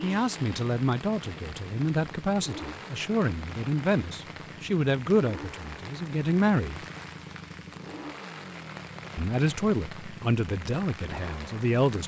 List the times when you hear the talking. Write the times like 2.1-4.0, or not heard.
0.0-6.8, 9.2-12.0.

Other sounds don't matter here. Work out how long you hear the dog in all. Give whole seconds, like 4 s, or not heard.
not heard.